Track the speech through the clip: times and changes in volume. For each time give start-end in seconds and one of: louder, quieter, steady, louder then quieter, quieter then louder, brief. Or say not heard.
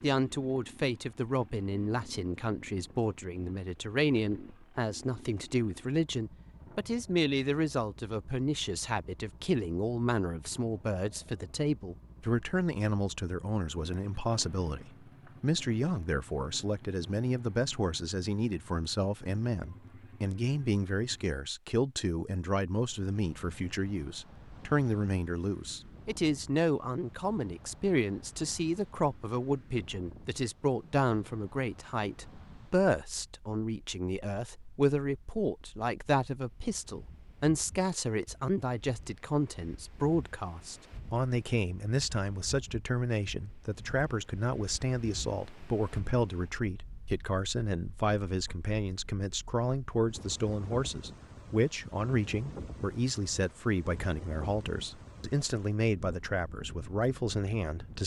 0.0-58.0 steady.